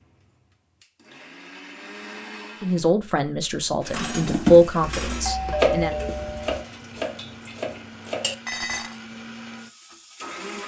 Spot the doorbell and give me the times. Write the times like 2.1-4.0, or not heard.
5.0-6.7.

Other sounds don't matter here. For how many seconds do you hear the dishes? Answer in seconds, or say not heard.
5 s.